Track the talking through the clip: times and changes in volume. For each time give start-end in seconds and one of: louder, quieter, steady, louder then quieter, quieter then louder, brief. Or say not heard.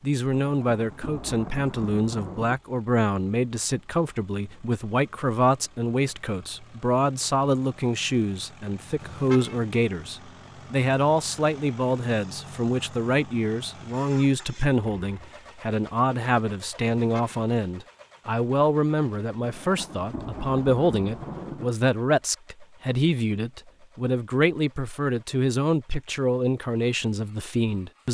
0.0-28.0 steady.